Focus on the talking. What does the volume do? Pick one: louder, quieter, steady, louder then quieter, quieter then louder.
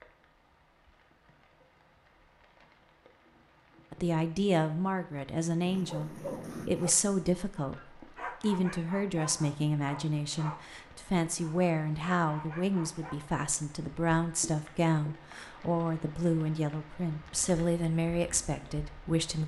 steady.